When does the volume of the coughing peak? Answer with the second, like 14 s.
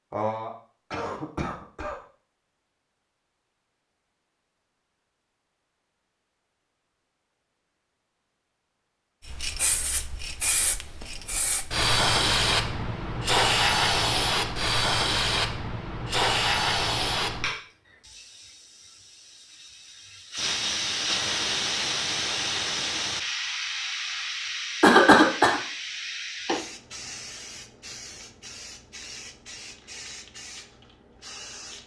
25 s.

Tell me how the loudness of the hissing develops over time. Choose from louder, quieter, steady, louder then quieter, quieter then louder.
quieter.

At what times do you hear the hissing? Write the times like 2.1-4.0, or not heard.
9.2-31.8.